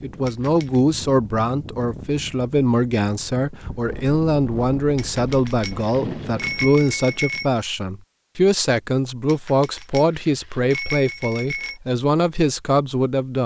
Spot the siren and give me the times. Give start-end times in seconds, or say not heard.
not heard.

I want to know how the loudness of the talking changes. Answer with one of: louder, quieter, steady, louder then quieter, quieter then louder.
steady.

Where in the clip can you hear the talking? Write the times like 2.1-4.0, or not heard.
0.0-13.4.